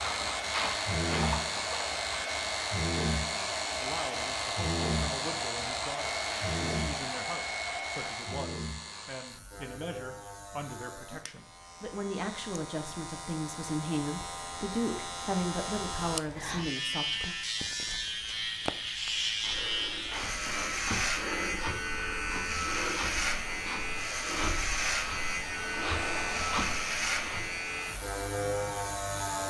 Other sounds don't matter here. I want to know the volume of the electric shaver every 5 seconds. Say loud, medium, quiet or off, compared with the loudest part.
loud, medium, medium, loud, loud, loud.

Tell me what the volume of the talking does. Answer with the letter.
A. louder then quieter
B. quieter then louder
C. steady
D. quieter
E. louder
E.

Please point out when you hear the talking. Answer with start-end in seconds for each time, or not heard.
3.8-17.4.